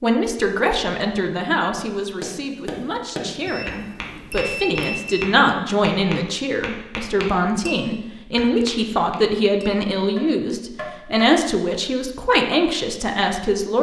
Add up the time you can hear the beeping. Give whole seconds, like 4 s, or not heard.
2 s.